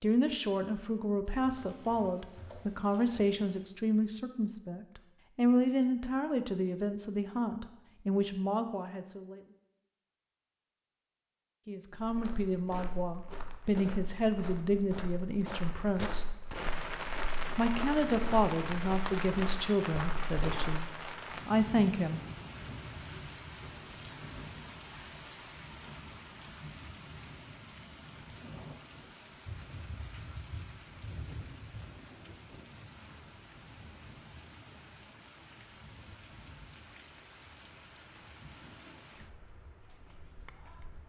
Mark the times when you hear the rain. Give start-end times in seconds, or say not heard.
16.5-41.0.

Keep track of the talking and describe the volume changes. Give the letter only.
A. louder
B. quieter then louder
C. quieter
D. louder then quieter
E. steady
E.